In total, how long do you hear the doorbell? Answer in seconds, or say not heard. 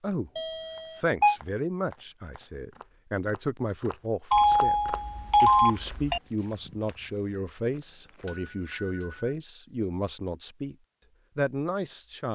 4 s.